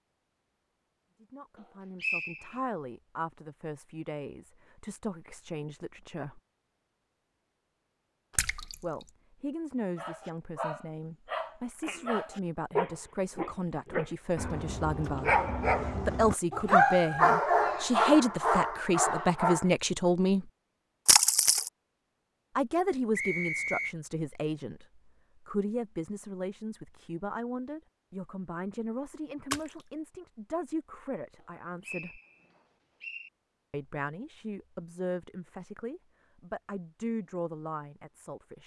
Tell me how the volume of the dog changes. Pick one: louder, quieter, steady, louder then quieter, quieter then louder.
louder.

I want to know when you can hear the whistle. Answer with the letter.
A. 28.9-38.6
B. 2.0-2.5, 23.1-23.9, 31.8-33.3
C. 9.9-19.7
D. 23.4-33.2
B.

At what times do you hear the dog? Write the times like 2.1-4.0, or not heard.
9.9-19.7.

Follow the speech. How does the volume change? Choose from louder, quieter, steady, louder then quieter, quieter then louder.
louder then quieter.